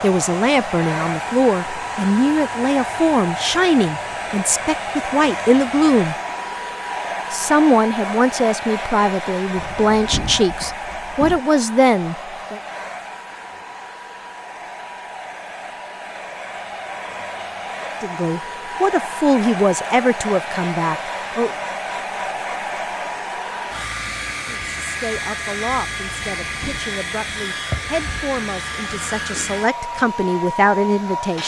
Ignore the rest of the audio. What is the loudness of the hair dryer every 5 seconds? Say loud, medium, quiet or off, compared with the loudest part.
loud, loud, medium, loud, loud, loud, loud.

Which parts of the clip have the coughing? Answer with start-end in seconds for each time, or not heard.
not heard.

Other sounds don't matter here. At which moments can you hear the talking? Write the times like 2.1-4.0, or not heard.
0.0-6.2, 7.3-12.6, 18.0-21.5, 24.6-31.4.